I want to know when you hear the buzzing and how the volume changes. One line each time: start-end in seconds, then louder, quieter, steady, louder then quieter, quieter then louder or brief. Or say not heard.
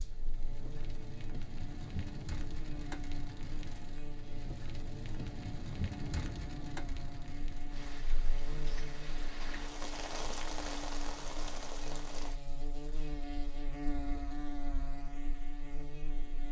0.0-16.4 louder.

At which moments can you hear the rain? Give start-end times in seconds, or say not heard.
0.0-12.4.